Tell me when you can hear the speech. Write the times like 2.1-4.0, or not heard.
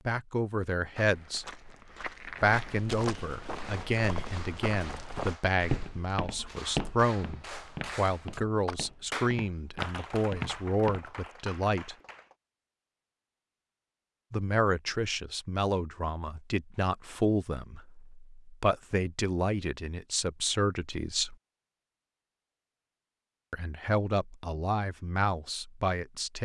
0.1-1.6, 2.4-11.9, 14.3-21.4, 23.5-26.3.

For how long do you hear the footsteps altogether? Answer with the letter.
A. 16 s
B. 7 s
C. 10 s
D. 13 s
C.